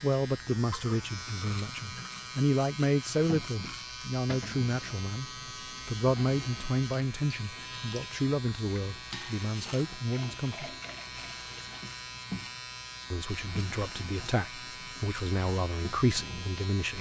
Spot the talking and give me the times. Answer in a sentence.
You can hear the talking from 0.0 to 10.8 s and from 13.1 to 16.9 s.